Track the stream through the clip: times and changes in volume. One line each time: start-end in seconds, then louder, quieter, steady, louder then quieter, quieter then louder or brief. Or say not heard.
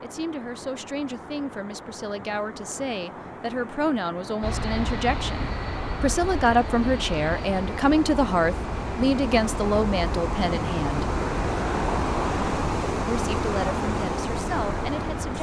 0.0-15.3 louder.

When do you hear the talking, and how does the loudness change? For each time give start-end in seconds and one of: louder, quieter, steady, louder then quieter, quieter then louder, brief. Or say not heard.
0.0-11.1 louder
13.1-15.3 brief.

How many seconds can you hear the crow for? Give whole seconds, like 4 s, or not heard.
not heard.